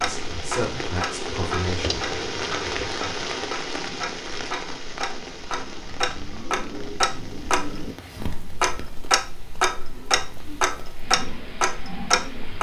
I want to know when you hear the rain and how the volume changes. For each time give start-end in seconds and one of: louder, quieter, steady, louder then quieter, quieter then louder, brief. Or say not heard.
0.0-12.5 quieter.